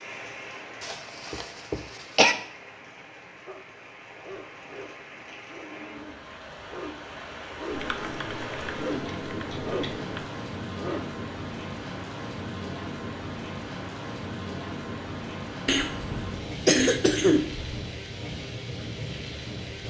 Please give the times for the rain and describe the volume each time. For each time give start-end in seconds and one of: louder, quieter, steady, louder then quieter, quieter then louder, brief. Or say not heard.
0.0-19.8 louder.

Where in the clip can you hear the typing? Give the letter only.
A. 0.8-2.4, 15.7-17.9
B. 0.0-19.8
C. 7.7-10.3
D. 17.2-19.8
C.